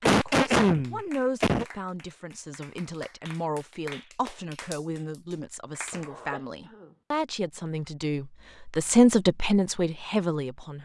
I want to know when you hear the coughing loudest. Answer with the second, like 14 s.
1 s.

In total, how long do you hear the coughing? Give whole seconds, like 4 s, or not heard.
3 s.